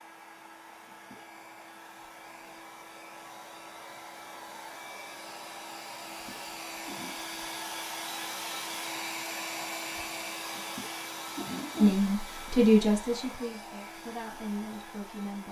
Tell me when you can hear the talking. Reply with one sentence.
The talking can be heard from 11.8 to 15.4 s.